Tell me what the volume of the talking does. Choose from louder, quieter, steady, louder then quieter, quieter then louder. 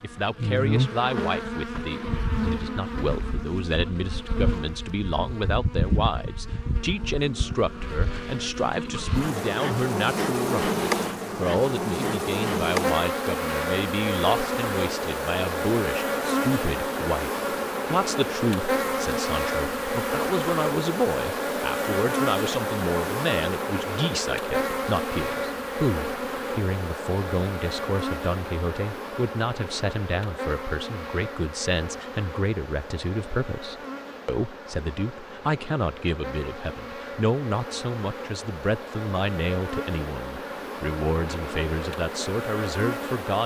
steady.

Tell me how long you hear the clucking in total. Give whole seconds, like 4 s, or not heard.
not heard.